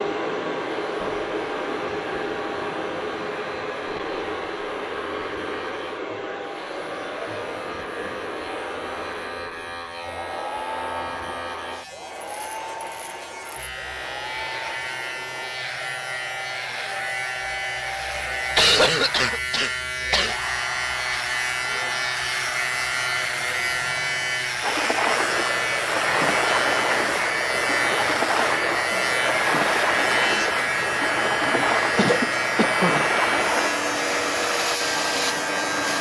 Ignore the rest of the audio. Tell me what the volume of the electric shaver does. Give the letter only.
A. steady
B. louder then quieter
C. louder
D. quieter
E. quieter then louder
C.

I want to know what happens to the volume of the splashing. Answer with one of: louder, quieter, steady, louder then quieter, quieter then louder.
steady.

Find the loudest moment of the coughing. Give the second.
19 s.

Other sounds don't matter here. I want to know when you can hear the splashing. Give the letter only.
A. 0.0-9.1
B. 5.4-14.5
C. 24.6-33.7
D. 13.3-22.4
C.